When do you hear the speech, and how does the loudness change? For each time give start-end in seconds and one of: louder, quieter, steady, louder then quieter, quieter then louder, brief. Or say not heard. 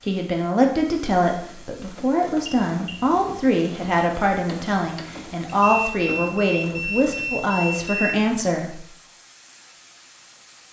0.1-8.8 steady.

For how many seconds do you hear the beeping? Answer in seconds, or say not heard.
3 s.